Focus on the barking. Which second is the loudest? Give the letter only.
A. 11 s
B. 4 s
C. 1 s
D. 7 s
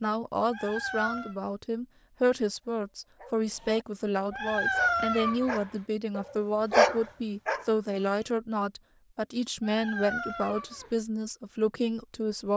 D.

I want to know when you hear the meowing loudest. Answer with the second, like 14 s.
5 s.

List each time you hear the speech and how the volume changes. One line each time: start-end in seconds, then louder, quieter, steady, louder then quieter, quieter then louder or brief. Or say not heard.
0.0-12.5 steady.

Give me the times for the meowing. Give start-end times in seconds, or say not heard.
0.5-1.4, 4.3-5.6, 9.6-10.9.